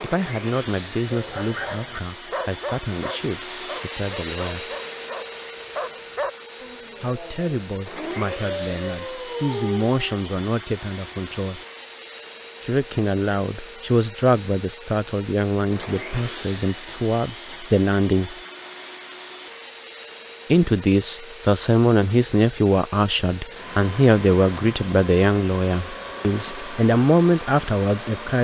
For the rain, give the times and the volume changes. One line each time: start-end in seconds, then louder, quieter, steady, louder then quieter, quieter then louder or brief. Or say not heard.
not heard.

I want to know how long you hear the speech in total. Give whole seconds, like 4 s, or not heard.
23 s.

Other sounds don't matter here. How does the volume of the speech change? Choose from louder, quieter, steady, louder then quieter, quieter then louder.
louder.